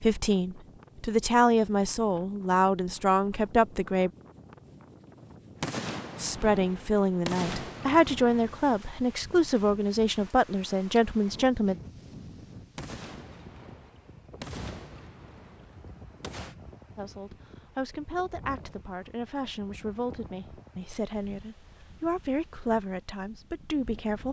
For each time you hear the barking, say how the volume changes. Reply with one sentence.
The barking can't be heard in this clip.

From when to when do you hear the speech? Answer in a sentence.
The speech can be heard from 0.0 to 4.1 s, from 6.2 to 11.8 s and from 16.9 to 24.2 s.